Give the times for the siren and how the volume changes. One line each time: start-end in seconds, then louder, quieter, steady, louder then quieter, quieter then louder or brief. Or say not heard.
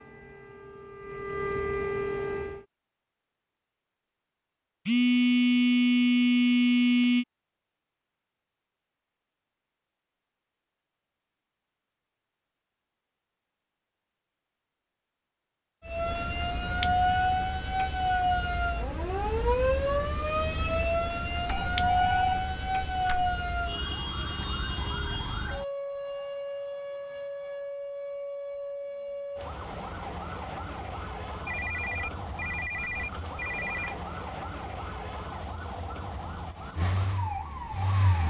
0.0-2.6 brief
15.8-38.2 quieter.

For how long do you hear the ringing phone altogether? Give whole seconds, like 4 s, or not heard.
7 s.